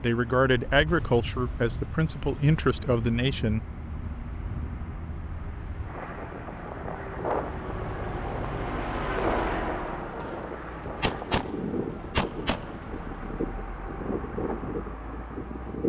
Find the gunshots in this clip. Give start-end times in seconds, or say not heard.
10.2-12.8.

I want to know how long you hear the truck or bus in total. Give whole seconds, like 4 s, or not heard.
16 s.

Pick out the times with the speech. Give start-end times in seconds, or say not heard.
0.0-3.6.